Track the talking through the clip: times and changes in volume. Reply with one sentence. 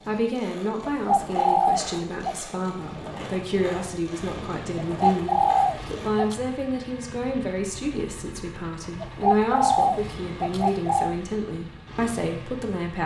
You can hear the talking from 0.1 to 13.0 s, at a steady volume.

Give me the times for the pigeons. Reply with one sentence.
The pigeons can be heard from 0.8 to 2.5 s, from 4.9 to 6.4 s and from 9.0 to 11.2 s.